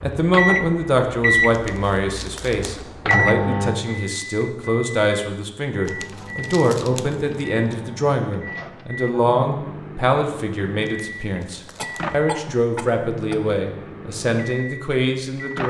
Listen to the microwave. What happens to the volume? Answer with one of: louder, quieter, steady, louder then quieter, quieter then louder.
quieter.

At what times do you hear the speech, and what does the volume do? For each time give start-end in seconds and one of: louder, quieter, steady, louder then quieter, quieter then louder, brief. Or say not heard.
0.0-15.6 steady.